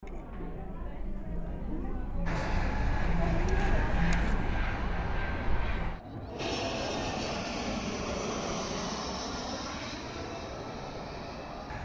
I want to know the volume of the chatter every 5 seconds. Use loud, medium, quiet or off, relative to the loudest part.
loud, loud, medium.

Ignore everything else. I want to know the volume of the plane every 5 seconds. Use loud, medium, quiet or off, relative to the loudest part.
loud, loud, medium.